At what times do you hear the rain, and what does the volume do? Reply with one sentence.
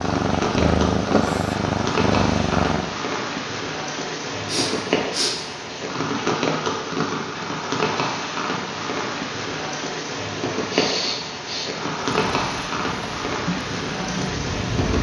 You can hear the rain from 0.0 to 14.9 s, at a steady volume.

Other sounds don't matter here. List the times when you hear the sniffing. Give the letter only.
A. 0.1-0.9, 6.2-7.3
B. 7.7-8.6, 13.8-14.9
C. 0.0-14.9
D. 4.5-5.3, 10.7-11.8
D.